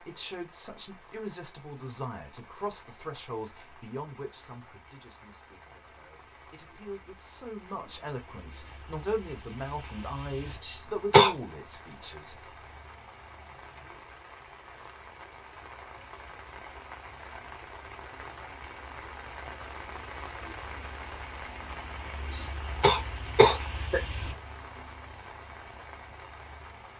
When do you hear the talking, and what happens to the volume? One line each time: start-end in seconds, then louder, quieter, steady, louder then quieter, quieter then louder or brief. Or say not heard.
0.0-12.4 quieter then louder.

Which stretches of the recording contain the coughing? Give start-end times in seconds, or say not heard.
10.6-11.3, 22.3-24.0.